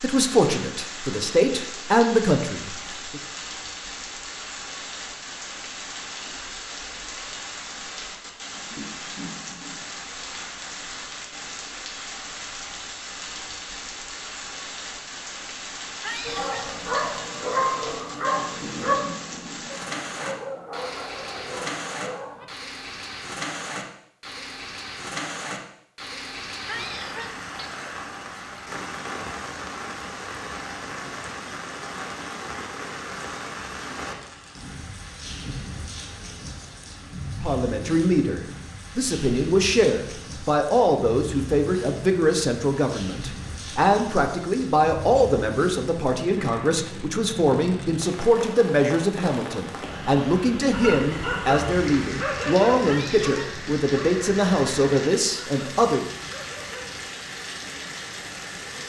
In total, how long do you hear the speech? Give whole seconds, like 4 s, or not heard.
22 s.